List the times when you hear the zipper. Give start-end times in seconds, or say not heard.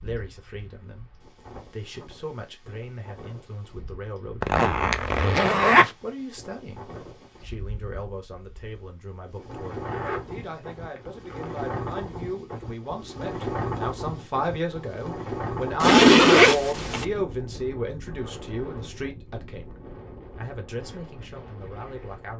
4.4-5.9, 9.8-11.6, 15.8-17.1.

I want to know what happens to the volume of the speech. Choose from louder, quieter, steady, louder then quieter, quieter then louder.
louder then quieter.